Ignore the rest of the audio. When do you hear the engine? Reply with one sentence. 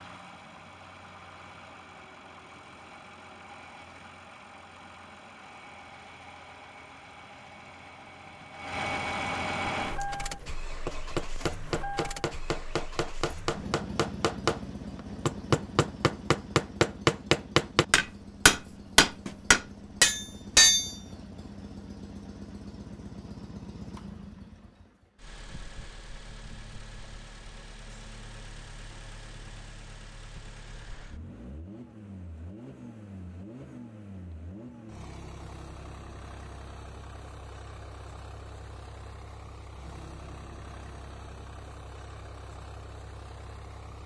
The engine can be heard from 0.0 to 44.0 s.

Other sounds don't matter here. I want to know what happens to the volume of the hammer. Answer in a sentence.
The loudness of the hammer goes up.